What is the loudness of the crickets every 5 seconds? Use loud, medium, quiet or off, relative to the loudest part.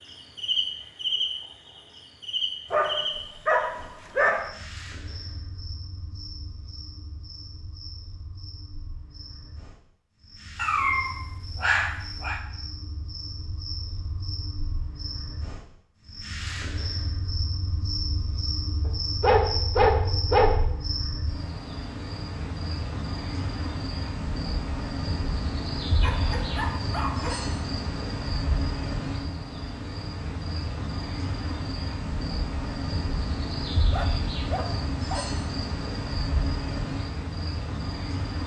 loud, quiet, medium, loud, loud, loud, loud, loud.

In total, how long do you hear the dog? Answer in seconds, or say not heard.
8 s.